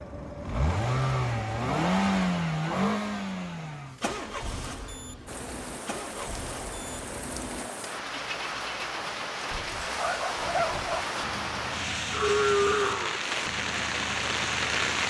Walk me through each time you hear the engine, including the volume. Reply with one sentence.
You can hear the engine from 0.0 to 15.0 s, getting quieter.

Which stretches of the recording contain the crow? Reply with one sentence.
You can't hear the crow here.